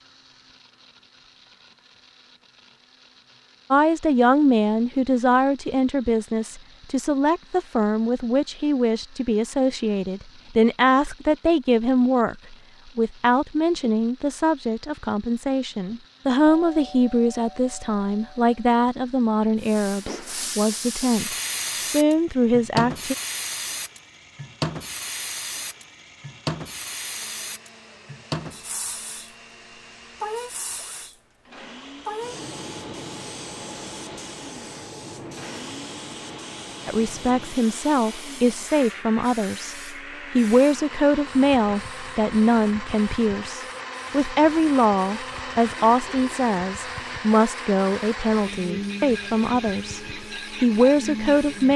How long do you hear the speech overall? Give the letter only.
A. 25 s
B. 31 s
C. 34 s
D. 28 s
C.